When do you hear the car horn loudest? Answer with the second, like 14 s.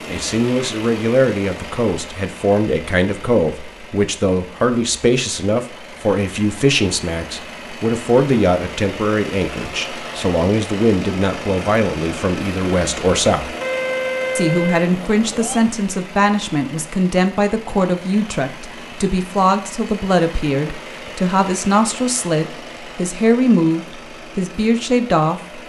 14 s.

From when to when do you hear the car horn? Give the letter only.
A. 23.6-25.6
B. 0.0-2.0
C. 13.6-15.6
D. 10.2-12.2
C.